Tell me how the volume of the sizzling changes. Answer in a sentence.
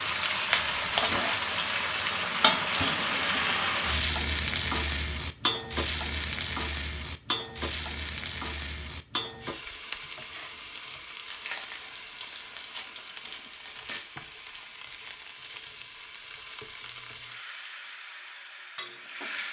The loudness of the sizzling goes down.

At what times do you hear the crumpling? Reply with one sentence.
The crumpling can be heard from 0.5 to 1.1 s and from 11.2 to 14.0 s.